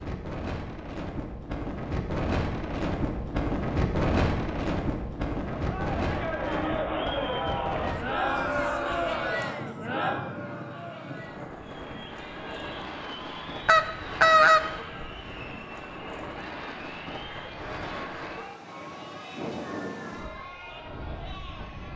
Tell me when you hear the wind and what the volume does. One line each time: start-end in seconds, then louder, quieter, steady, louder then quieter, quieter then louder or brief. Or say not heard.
0.0-21.9 quieter.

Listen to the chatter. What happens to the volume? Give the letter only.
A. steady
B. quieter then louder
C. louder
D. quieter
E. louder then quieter
D.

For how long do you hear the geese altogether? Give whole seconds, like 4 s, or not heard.
2 s.